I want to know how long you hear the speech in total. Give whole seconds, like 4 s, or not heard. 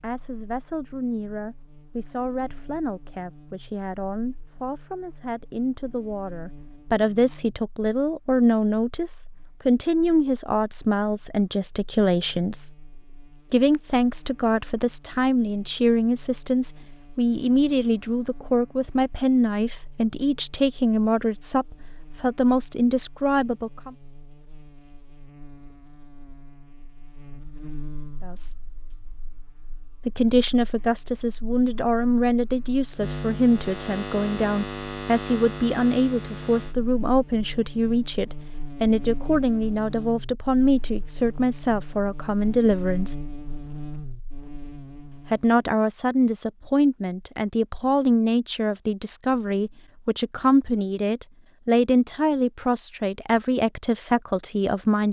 46 s.